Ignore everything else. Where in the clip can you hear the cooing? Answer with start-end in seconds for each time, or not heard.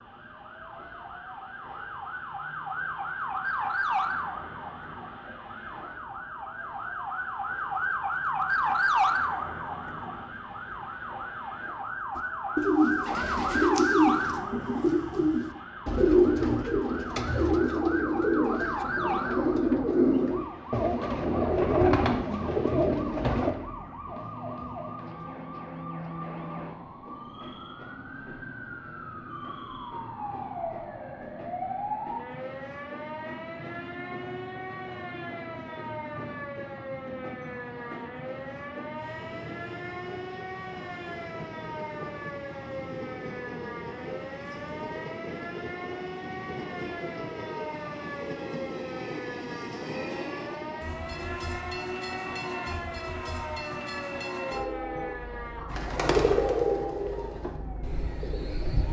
12.2-23.6, 55.6-58.8.